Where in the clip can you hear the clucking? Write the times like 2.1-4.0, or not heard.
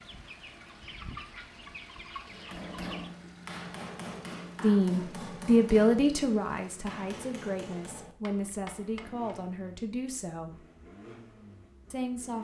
0.0-3.1.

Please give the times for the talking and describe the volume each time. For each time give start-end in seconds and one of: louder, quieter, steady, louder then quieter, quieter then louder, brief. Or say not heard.
4.6-10.7 quieter
11.9-12.3 brief.